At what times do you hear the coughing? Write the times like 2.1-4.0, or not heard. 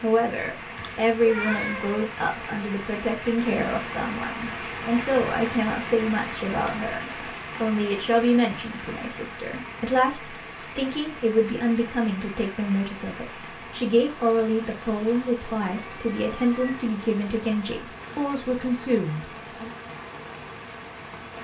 not heard.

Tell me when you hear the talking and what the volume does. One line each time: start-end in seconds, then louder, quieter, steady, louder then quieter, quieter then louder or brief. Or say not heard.
0.0-19.7 steady.